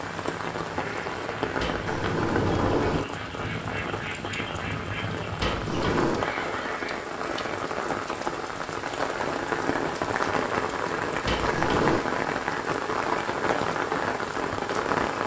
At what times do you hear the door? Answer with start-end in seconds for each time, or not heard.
1.6-3.0, 5.4-6.3, 11.2-12.0.